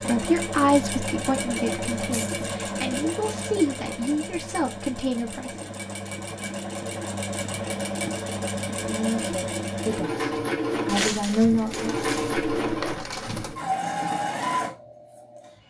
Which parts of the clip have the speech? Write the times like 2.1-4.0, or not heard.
0.1-5.7, 8.8-11.9.